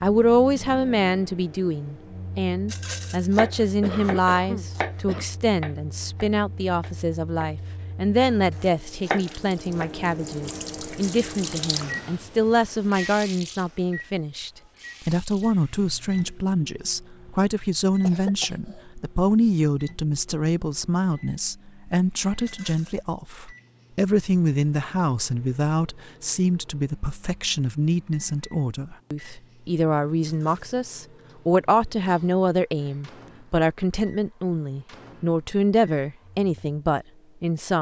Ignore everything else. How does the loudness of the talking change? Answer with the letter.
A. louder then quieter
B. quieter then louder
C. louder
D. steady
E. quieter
D.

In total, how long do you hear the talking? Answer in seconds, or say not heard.
38 s.